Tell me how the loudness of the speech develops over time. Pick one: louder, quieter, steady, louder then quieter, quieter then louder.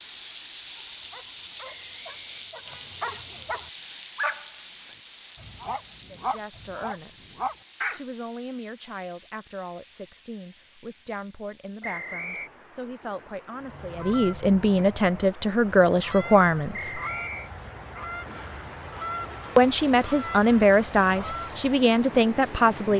louder.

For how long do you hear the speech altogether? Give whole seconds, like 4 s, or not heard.
14 s.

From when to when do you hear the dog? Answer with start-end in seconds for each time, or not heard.
0.8-4.5, 5.3-8.0.